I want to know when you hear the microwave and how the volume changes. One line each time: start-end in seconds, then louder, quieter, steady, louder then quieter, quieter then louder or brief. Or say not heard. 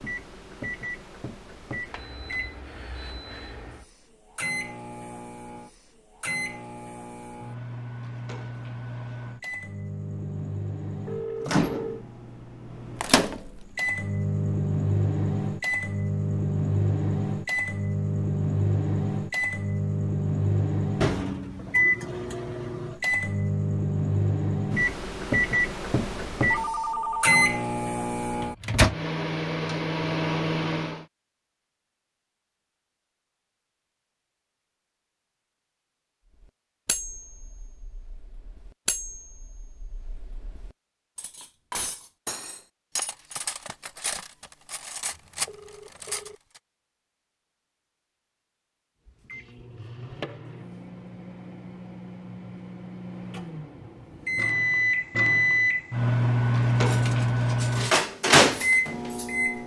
0.0-31.1 louder
49.0-59.6 louder.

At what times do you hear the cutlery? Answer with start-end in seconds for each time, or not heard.
36.4-46.6, 56.8-59.6.